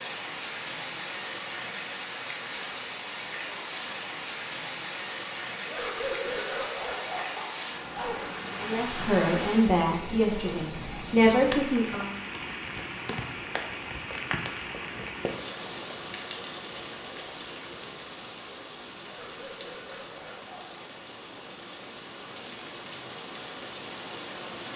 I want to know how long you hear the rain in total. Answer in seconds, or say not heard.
25 s.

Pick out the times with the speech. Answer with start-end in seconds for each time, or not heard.
8.6-12.2.